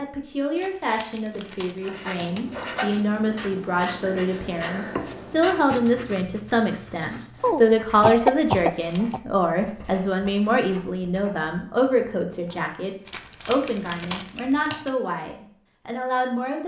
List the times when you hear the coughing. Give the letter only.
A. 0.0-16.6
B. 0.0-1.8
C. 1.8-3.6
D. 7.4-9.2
D.